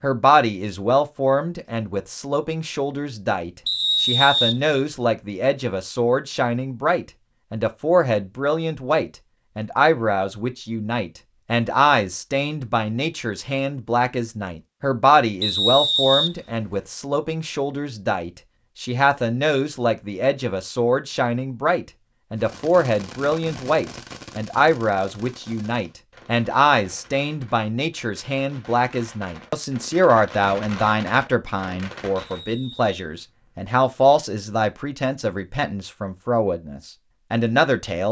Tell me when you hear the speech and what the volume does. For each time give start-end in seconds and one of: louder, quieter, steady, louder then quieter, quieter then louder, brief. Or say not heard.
0.0-38.0 steady.